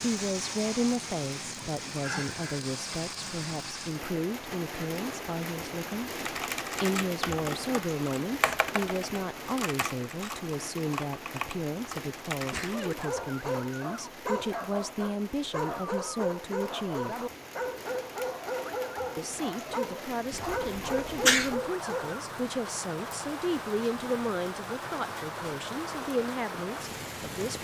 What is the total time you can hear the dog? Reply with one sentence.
You can hear the dog for 9 seconds altogether.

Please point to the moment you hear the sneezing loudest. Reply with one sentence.
The volume of the sneezing peaks at 21 seconds.